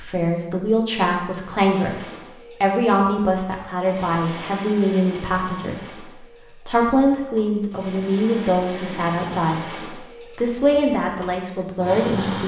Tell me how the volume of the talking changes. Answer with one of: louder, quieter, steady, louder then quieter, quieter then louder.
steady.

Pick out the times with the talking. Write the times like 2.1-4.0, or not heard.
0.0-6.0, 6.7-12.4.